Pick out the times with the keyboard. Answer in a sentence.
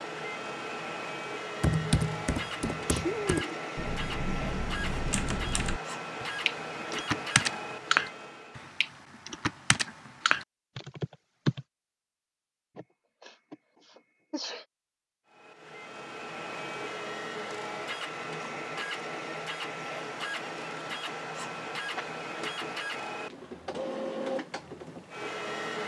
You can hear the keyboard from 1.6 to 11.7 s.